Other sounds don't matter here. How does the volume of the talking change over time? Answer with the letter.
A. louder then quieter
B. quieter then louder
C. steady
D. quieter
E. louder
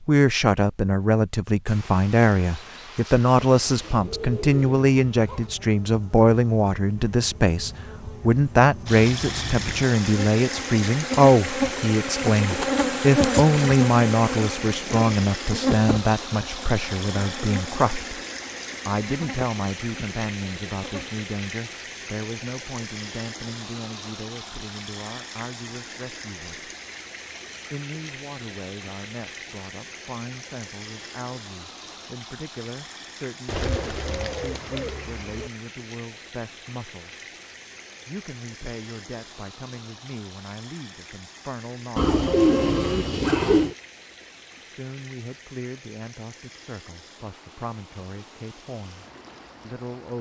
D.